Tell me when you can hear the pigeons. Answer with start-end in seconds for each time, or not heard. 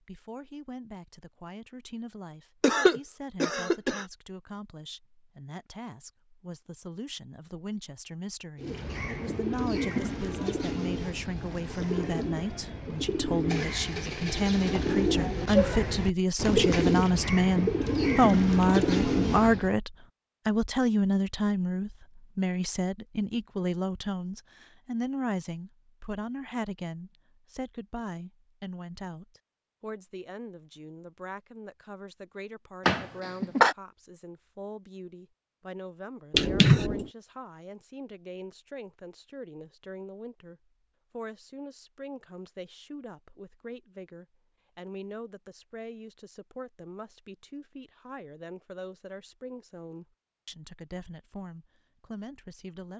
8.6-19.7.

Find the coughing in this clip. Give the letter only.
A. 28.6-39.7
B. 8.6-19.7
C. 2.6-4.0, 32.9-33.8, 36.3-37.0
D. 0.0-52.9
C.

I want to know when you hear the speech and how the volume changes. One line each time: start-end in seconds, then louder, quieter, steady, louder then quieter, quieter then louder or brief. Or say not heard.
0.0-52.9 louder then quieter.